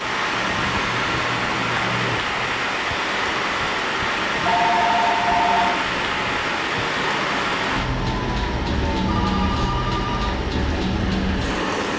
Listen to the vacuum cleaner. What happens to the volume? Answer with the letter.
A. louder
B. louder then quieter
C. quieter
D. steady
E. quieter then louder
D.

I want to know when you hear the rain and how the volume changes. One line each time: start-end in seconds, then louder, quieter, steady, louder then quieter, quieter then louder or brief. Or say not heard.
0.0-11.9 steady.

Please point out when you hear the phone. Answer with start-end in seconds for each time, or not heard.
0.3-2.1, 4.5-5.8, 9.1-10.3.